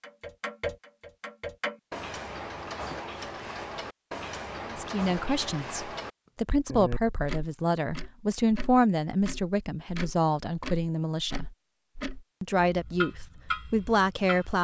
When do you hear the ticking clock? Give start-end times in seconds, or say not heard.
0.0-14.6.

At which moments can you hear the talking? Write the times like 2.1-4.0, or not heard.
4.7-11.4, 12.4-14.6.